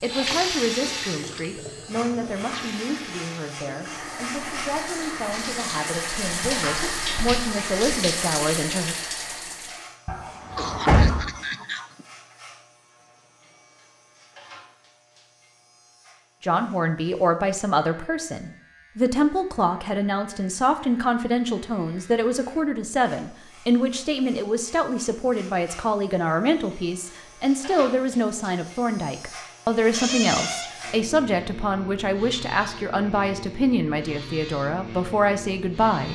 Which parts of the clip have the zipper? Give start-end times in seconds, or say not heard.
not heard.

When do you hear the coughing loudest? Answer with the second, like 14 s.
11 s.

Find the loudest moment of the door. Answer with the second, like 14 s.
11 s.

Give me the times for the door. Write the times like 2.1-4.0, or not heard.
10.1-11.2, 29.9-30.7.